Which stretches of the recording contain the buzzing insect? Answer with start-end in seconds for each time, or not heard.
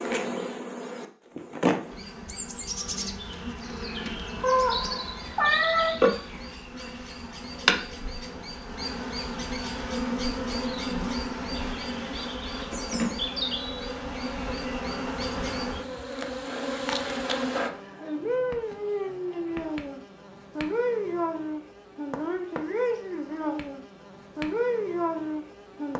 0.0-25.9.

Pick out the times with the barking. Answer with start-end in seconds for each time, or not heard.
not heard.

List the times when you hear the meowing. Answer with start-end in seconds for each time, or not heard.
4.4-6.0.